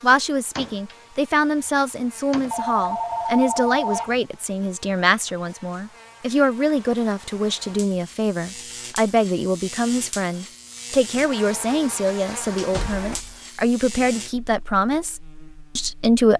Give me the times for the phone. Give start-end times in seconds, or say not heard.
2.5-4.2.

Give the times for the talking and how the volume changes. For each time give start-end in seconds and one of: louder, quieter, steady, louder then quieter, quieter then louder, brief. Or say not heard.
0.0-16.3 steady.